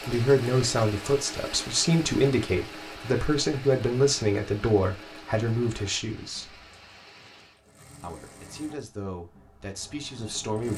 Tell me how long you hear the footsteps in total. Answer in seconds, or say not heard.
not heard.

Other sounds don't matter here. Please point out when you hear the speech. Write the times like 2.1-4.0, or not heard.
0.1-6.7, 8.0-10.7.